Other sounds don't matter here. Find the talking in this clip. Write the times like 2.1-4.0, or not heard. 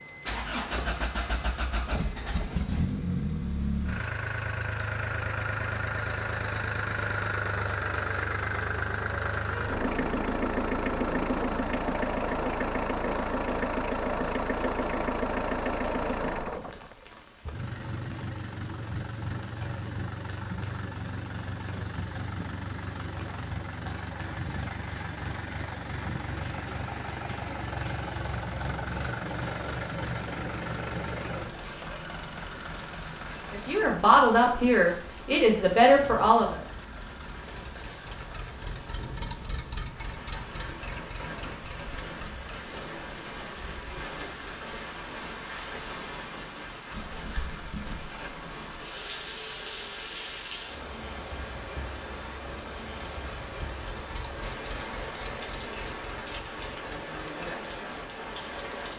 33.5-36.6.